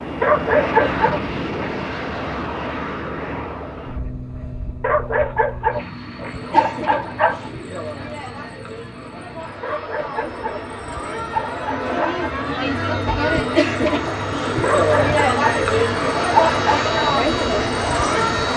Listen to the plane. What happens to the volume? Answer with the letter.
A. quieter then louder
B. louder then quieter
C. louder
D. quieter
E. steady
A.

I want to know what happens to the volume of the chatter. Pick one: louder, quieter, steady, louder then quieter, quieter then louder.
louder.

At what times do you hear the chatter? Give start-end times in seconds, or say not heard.
6.0-18.5.